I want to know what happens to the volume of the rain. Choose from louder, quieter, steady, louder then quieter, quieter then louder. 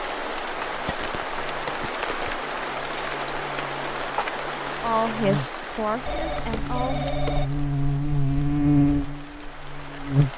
quieter.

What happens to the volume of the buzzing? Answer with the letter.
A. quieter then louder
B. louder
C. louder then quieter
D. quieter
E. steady
B.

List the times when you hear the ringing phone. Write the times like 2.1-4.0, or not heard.
0.8-2.4, 6.0-7.5.